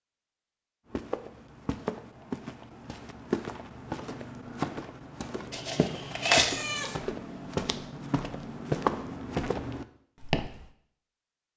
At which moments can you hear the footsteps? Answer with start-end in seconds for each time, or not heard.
0.9-10.7.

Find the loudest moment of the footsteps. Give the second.
9 s.